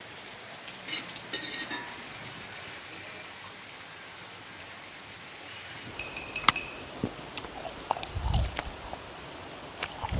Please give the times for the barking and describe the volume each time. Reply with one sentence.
You can't hear the barking here.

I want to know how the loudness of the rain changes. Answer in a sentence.
The volume of the rain stays about the same.